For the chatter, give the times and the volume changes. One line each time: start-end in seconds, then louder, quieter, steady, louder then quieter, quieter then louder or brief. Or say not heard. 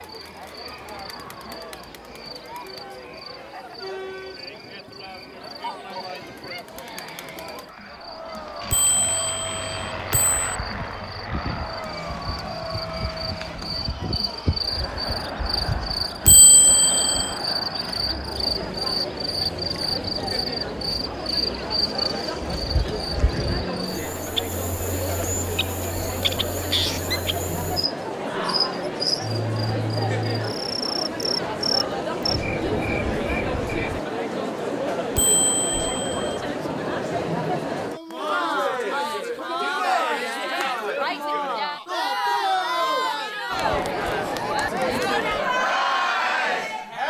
0.0-47.0 louder.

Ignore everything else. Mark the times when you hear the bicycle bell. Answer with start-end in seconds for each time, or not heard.
8.7-10.6, 16.2-17.4, 35.1-36.4.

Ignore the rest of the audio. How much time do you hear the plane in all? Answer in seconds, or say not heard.
6 s.